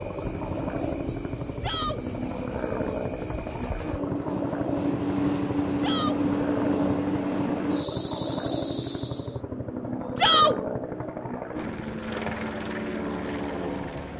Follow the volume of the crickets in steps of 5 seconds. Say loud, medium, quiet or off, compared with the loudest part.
loud, loud, off.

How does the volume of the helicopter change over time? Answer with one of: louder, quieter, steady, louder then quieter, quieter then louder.
steady.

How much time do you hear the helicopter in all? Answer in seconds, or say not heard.
14 s.